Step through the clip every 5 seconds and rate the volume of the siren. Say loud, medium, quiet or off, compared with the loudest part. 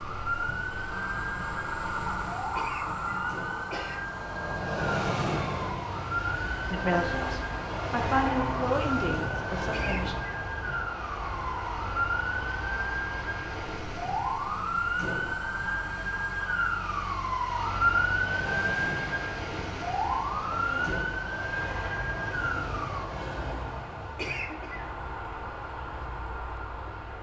medium, medium, loud, loud, loud, off.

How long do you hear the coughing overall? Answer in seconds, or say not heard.
3 s.